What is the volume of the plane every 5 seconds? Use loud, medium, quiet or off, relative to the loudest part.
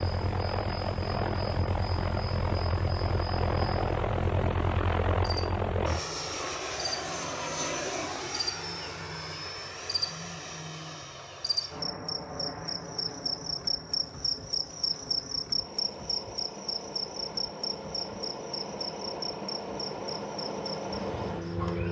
loud, loud, medium, medium, loud.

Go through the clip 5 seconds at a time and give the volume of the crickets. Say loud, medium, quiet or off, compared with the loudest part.
quiet, medium, loud, loud, medium.